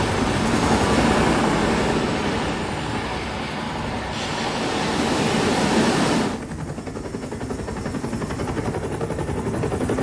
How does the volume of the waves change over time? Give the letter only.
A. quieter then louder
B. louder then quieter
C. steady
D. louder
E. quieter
A.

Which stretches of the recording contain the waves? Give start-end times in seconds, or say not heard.
0.0-6.4.